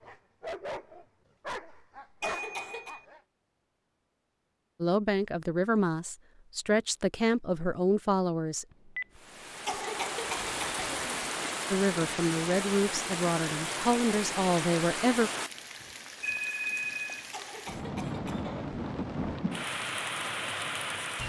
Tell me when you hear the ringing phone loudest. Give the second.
17 s.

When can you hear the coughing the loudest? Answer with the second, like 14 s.
10 s.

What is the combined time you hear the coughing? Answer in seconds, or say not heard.
4 s.